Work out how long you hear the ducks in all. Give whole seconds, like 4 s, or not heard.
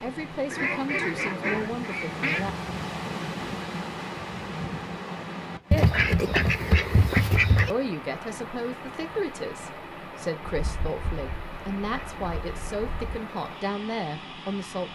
7 s.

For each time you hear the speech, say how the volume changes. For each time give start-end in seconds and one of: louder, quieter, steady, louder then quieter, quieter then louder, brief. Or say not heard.
0.0-2.5 brief
7.7-14.9 steady.